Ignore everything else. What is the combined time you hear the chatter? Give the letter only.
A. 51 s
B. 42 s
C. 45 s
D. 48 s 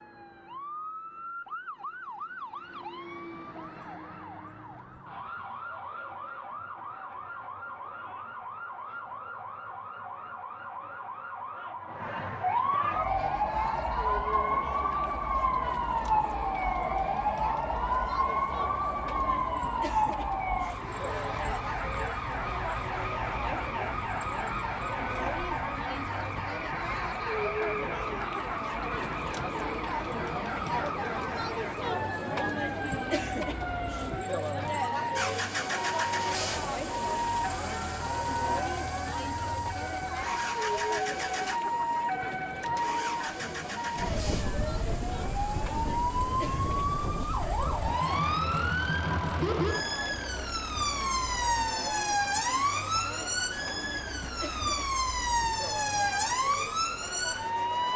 C.